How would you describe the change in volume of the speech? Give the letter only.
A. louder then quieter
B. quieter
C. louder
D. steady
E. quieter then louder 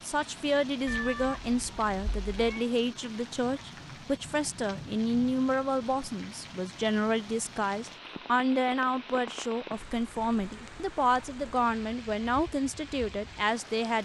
D.